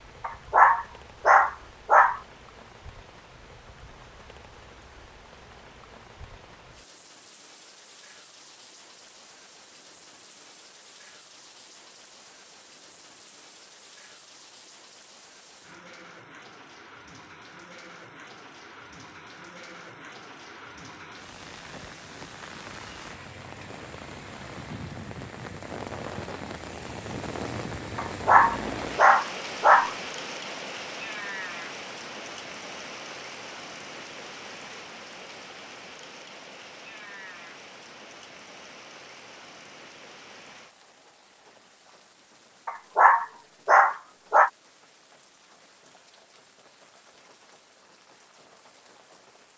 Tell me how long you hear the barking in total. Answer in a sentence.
The barking can be heard for 6 seconds in total.